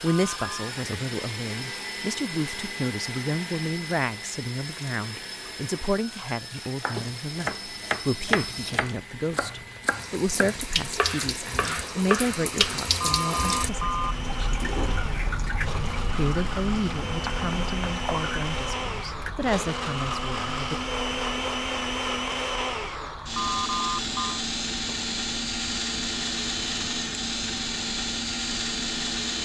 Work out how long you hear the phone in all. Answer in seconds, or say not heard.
3 s.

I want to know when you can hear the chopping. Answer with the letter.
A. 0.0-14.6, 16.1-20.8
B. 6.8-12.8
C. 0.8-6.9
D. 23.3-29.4
B.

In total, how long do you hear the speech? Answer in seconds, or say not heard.
19 s.